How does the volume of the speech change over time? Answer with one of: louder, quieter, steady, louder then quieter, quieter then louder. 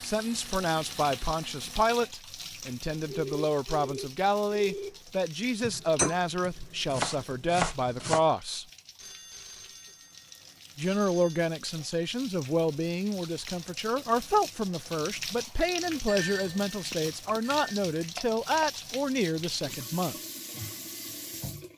steady.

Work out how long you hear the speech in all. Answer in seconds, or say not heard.
18 s.